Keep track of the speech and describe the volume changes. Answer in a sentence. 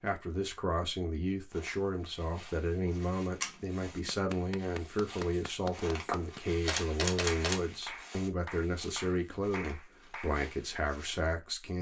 The volume of the speech stays about the same.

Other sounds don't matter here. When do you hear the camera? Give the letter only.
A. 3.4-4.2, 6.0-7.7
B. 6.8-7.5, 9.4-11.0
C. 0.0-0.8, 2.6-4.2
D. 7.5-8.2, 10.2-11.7
A.